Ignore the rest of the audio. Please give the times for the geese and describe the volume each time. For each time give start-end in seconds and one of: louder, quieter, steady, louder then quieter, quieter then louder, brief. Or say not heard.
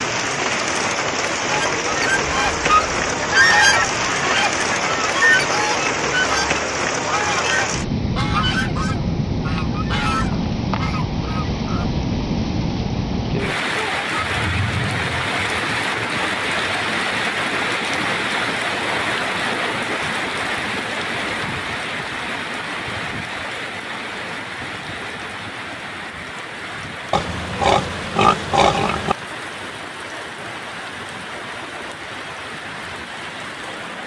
1.4-11.8 quieter.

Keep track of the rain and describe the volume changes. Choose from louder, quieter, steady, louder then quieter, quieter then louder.
quieter.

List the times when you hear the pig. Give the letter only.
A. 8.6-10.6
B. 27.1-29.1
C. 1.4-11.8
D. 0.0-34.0
B.